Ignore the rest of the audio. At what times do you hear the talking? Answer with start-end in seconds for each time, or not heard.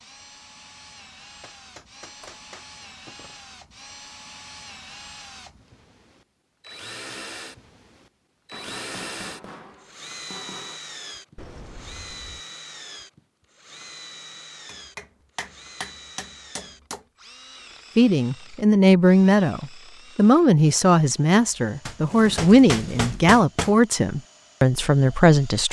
17.9-25.6.